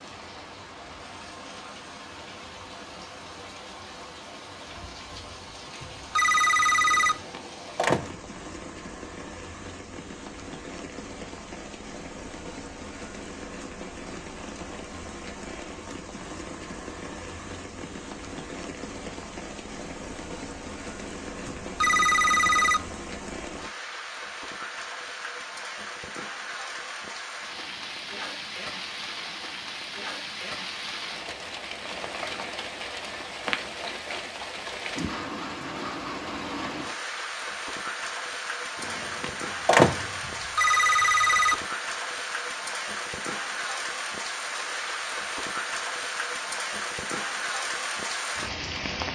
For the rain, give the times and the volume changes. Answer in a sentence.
The rain can be heard from 0.0 to 49.1 s, getting louder.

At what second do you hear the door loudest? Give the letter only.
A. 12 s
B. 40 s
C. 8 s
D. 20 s
B.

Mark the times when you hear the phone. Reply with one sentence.
The phone can be heard from 5.8 to 7.2 s, from 21.4 to 22.8 s and from 40.2 to 41.5 s.